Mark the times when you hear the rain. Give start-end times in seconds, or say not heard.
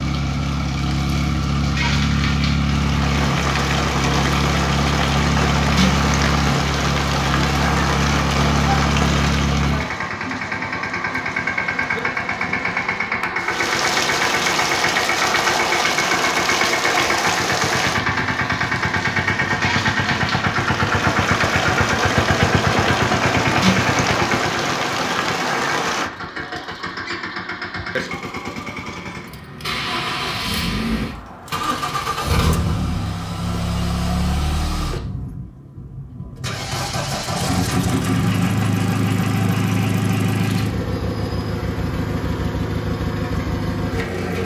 0.0-26.1.